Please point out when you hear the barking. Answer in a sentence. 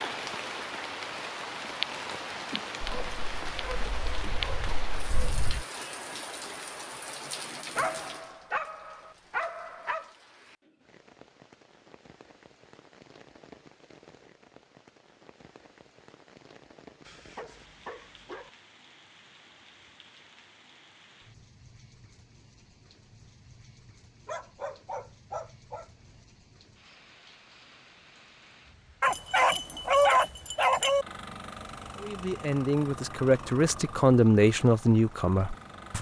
The barking can be heard from 2.8 to 5.7 s, from 7.8 to 10.1 s, from 17.1 to 18.5 s, from 24.2 to 26.2 s and from 29.0 to 31.1 s.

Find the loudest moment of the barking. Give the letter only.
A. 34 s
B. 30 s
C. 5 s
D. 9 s
B.